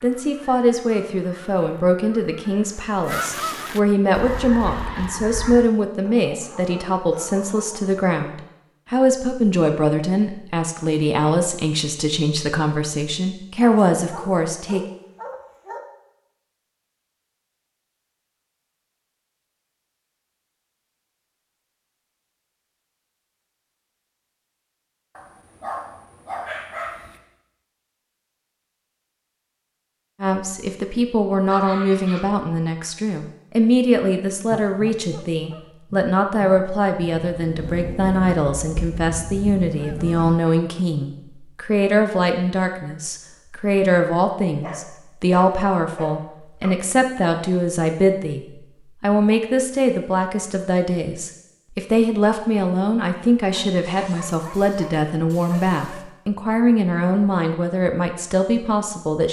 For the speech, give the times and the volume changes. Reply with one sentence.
The speech can be heard from 0.0 to 14.8 s, at a steady volume; and from 30.2 to 59.2 s, at a steady volume.